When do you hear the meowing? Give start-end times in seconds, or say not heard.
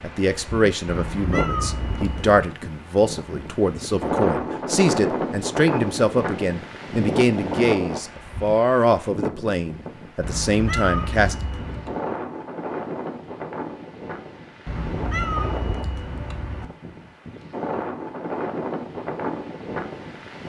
0.8-2.5, 10.2-12.0, 14.7-16.6.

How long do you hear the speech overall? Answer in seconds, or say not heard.
11 s.